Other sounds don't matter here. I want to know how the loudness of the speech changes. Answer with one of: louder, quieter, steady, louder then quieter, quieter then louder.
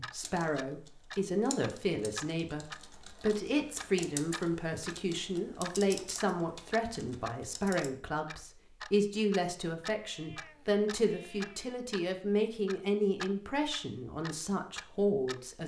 steady.